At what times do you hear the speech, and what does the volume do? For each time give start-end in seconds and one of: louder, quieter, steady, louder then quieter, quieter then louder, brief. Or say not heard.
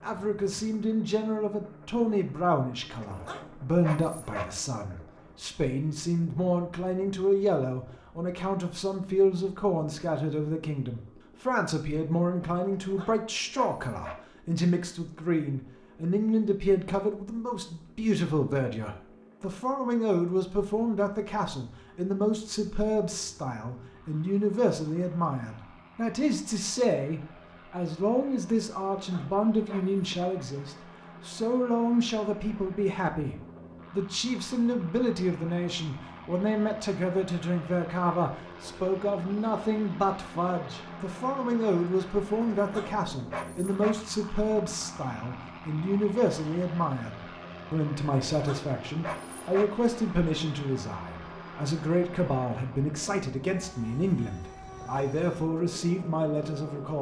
0.0-56.9 steady.